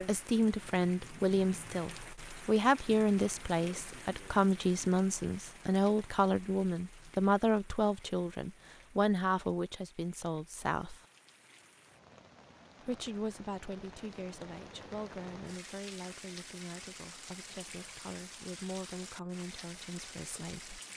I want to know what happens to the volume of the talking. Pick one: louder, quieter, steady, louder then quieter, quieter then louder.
quieter.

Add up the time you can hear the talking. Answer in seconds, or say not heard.
19 s.